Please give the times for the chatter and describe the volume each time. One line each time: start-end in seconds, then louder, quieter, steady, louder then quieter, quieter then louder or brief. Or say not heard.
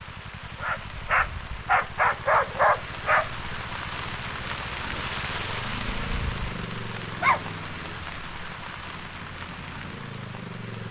not heard.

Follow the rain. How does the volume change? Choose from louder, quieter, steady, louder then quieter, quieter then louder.
louder then quieter.